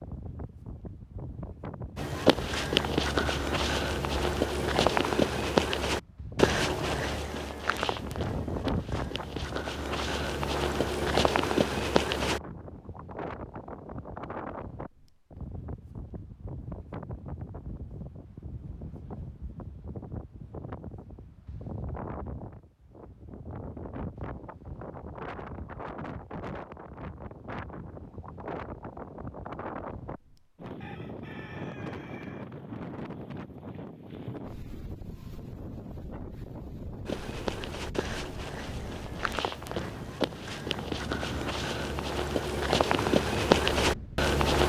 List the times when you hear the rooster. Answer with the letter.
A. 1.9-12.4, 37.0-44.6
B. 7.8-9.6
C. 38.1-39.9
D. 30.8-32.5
D.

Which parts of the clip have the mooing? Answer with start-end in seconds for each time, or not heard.
not heard.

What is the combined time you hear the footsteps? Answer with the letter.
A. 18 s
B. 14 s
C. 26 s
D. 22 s
A.